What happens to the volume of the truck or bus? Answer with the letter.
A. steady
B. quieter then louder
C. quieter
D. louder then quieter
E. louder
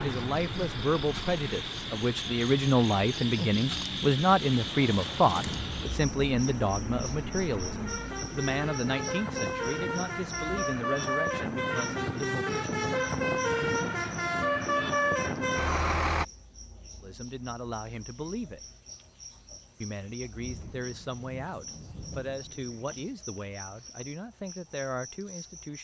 E.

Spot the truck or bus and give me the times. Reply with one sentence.
The truck or bus can be heard from 0.0 to 16.2 s.